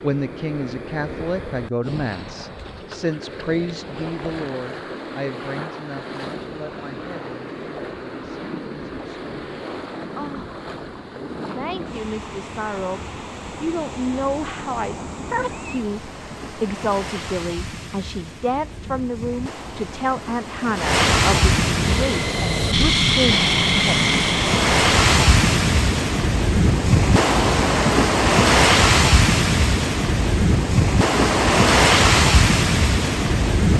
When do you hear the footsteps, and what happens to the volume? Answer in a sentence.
The footsteps can't be heard in this clip.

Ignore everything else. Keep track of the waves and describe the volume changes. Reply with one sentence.
The volume of the waves goes up.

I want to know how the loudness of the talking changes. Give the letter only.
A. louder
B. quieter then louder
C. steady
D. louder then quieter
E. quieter
B.